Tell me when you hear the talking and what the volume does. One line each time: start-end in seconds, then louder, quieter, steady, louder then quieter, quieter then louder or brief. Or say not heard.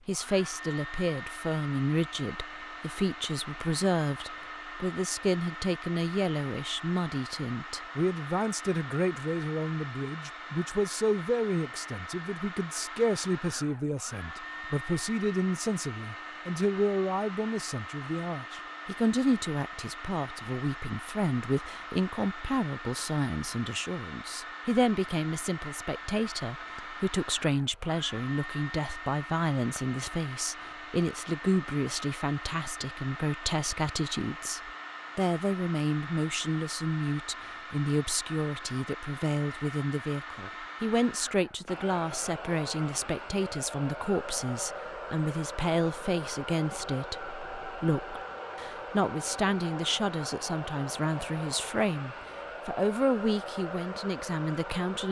0.1-55.0 steady.